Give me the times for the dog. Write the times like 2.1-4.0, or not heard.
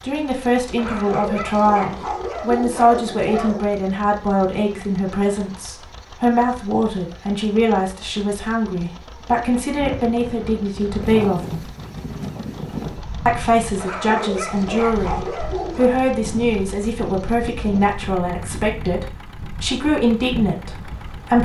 0.8-3.7, 13.8-16.0.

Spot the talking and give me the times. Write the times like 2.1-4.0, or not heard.
0.0-11.7, 13.2-21.4.